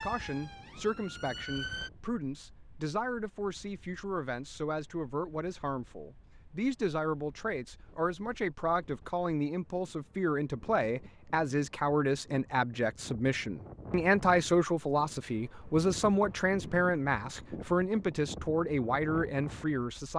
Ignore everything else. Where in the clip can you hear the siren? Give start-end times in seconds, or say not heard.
0.0-1.9.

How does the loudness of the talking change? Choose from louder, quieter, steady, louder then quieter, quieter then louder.
louder.